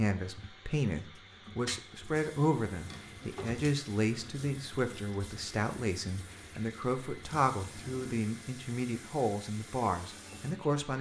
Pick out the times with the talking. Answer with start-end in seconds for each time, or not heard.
0.0-10.9.